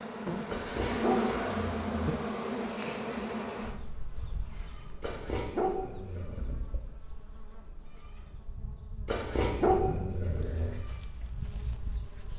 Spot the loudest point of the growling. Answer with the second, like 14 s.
10 s.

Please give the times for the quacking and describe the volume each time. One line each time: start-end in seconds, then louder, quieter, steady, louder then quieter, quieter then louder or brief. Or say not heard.
not heard.